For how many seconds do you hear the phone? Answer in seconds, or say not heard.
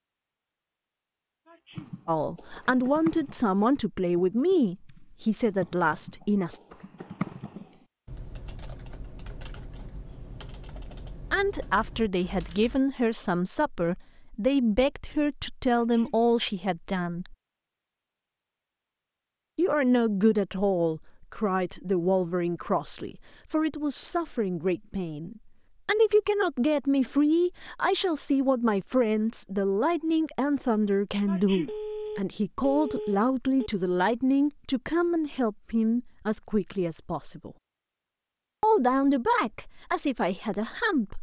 2 s.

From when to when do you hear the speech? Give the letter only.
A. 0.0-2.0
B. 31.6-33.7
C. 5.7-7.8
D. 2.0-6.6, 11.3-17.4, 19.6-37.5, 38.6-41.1
D.